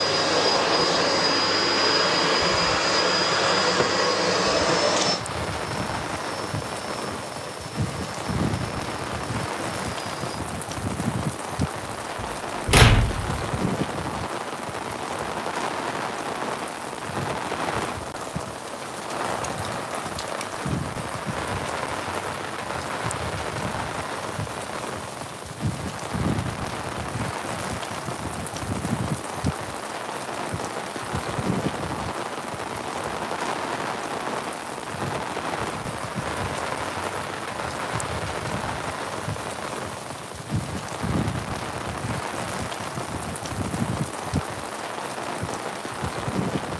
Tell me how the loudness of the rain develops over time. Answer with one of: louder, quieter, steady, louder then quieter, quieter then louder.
steady.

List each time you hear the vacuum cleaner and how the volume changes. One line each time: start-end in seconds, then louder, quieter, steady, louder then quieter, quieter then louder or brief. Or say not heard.
0.0-10.4 quieter.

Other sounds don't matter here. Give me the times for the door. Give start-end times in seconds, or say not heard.
11.9-13.4.